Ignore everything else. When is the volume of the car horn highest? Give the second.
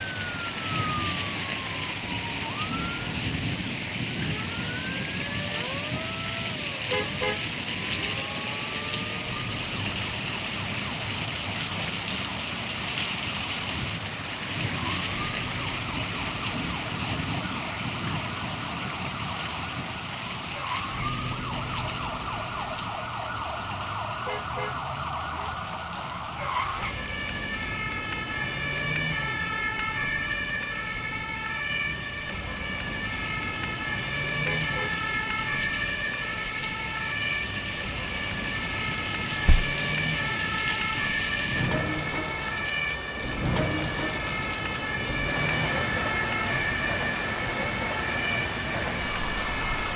7 s.